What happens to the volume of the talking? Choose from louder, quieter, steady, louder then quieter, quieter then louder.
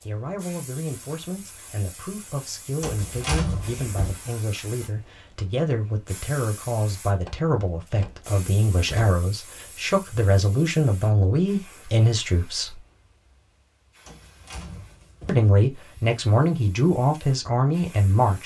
louder.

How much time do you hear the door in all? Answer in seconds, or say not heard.
5 s.